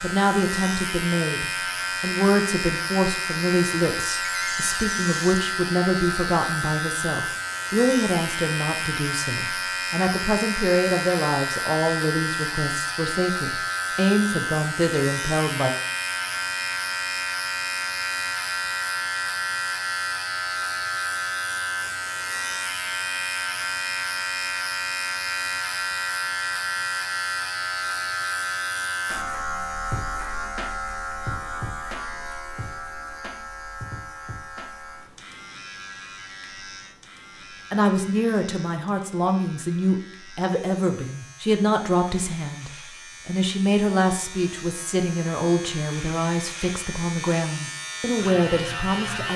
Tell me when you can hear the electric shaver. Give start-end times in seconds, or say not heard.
0.0-49.3.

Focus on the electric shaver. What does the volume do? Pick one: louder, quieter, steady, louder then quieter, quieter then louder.
quieter.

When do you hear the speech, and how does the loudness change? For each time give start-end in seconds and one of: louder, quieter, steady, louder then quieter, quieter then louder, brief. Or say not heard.
0.0-15.7 steady
37.7-49.3 steady.